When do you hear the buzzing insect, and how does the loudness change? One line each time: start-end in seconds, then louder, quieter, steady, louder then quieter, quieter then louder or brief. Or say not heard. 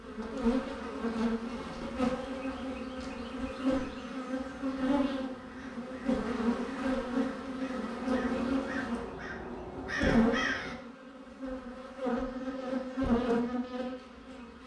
0.0-14.6 steady.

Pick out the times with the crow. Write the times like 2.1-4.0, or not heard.
4.4-10.8.